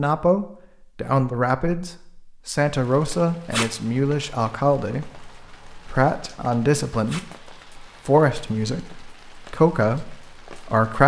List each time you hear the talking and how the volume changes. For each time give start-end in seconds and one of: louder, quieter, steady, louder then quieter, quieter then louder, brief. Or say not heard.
0.0-11.0 steady.